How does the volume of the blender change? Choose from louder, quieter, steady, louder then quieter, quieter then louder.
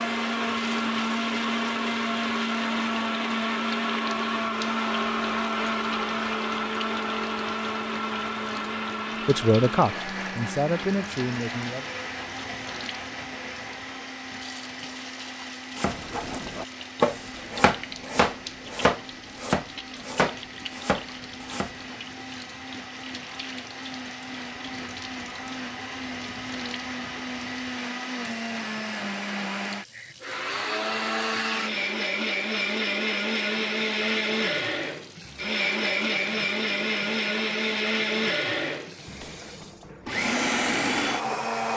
quieter then louder.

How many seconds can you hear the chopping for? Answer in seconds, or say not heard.
6 s.